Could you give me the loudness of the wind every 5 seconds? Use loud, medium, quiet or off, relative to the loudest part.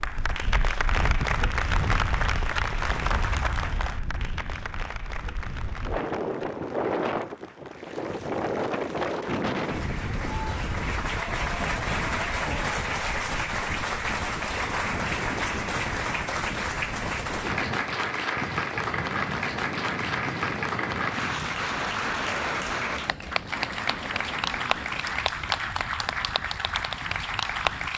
medium, loud, medium, medium, medium, quiet.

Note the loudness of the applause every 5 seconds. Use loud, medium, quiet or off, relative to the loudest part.
loud, quiet, loud, loud, loud, loud.